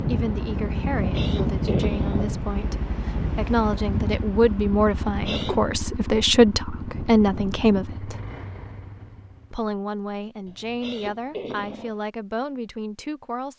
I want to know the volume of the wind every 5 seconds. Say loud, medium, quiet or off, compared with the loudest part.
loud, medium, off.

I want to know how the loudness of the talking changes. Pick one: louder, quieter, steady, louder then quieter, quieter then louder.
louder then quieter.